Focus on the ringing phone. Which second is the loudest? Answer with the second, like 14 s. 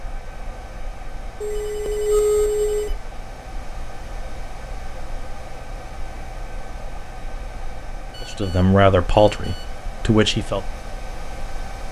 2 s.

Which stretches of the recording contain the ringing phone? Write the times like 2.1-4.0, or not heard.
1.4-2.9, 8.1-9.8.